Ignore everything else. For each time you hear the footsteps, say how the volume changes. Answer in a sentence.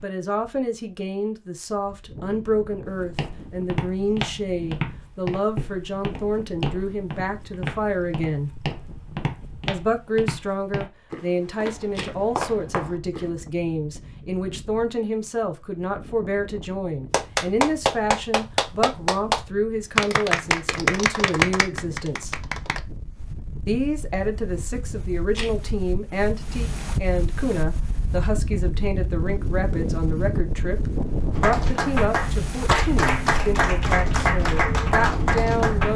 The footsteps can be heard from 2.9 to 13.3 s, at a steady volume.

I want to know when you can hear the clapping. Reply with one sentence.
The clapping can be heard from 17.1 to 22.8 s and from 31.3 to 35.9 s.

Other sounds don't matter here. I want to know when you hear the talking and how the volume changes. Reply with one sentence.
The talking can be heard from 0.0 to 8.5 s, at a steady volume; from 9.7 to 22.4 s, at a steady volume; and from 23.6 to 35.9 s, at a steady volume.